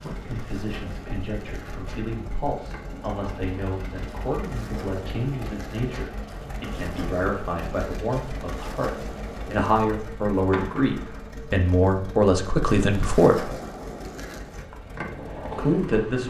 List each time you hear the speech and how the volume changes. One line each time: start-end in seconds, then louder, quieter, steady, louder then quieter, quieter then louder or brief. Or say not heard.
0.0-13.5 louder
15.6-16.2 brief.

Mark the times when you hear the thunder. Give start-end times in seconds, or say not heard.
not heard.